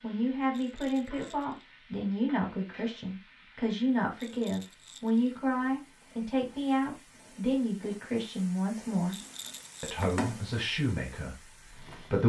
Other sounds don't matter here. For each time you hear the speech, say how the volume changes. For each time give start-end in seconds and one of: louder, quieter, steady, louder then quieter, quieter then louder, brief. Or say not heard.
0.0-9.2 steady
9.8-12.2 brief.